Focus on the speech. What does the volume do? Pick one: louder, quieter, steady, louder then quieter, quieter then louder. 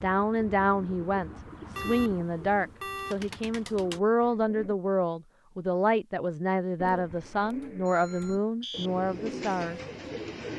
steady.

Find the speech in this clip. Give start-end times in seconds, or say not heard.
0.0-9.8.